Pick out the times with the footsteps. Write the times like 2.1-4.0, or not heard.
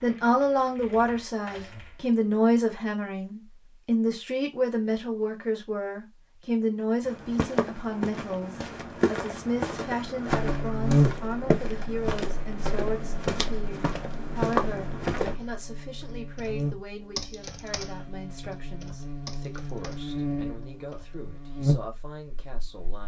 7.0-15.3.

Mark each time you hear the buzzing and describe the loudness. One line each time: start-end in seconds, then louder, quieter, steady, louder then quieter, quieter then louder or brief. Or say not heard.
10.2-23.0 quieter then louder.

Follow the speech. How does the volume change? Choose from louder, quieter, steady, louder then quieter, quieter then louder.
quieter.